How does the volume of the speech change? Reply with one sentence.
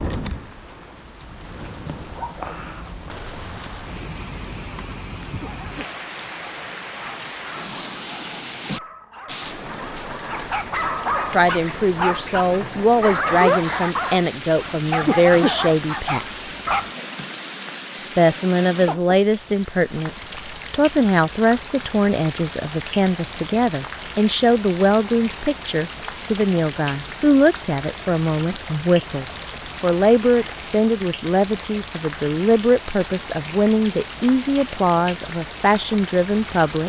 The loudness of the speech stays about the same.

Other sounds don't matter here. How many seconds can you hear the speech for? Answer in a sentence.
The speech can be heard for 24 seconds in total.